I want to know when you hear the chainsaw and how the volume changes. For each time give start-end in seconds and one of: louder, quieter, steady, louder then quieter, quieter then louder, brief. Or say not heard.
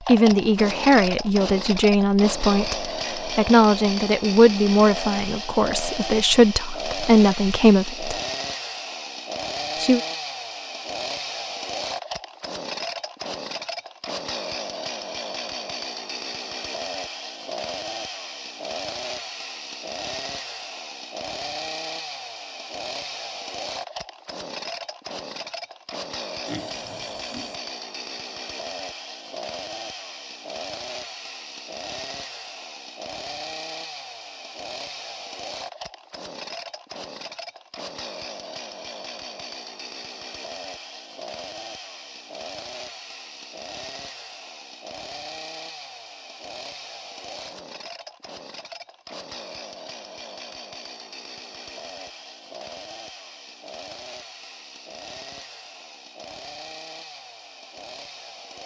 0.0-58.6 quieter.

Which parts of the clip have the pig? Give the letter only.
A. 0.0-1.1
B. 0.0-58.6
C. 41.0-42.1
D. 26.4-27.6
D.